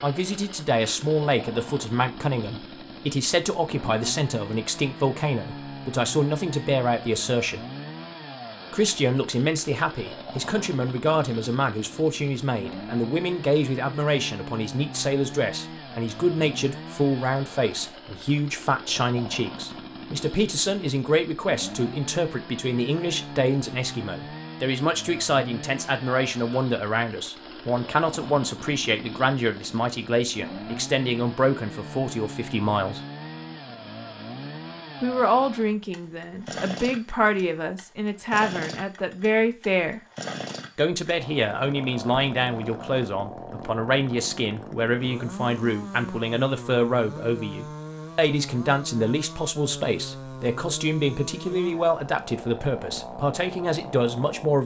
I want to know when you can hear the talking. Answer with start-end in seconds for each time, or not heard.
0.0-7.7, 8.7-33.0, 35.0-40.0, 40.8-54.6.